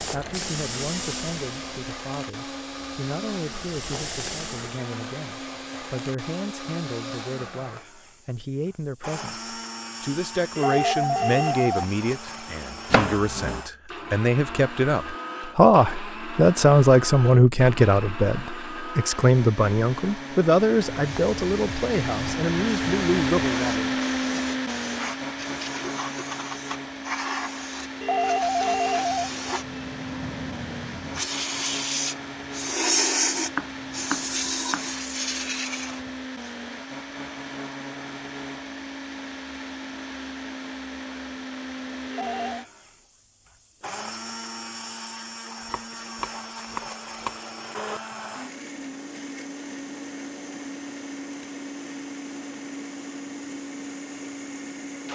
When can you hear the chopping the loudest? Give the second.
13 s.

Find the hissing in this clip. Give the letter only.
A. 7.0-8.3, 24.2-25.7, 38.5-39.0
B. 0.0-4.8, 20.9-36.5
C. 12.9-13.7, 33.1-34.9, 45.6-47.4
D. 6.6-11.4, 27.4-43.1
B.